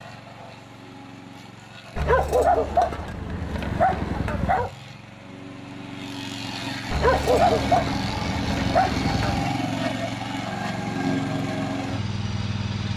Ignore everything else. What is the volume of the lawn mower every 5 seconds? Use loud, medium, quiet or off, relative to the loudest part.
quiet, loud, loud.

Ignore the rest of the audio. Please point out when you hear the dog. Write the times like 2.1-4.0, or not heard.
1.9-4.7, 6.9-9.5.